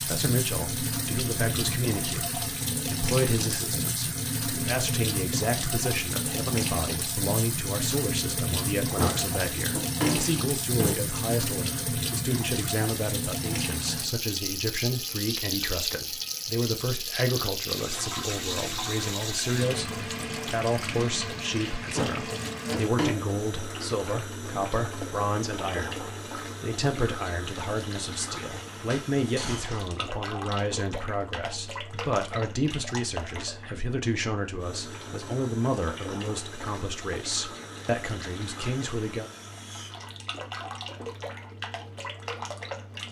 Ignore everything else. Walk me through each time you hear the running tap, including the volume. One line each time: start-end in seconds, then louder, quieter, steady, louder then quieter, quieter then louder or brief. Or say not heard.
0.0-43.0 quieter.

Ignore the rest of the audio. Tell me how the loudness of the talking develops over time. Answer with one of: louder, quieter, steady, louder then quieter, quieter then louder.
steady.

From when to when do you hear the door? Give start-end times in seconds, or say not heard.
8.9-10.9, 21.9-23.1, 28.9-30.0.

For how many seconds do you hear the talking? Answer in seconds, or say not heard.
39 s.